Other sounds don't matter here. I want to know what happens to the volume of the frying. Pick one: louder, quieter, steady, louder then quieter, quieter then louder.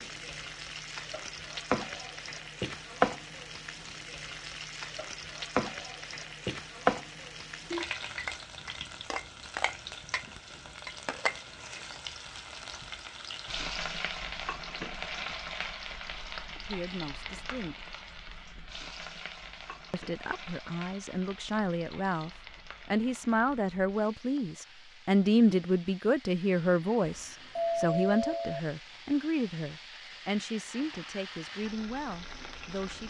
quieter.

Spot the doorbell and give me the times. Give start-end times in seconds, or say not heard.
27.0-28.6.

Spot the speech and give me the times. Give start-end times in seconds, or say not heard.
16.6-17.9, 19.9-33.0.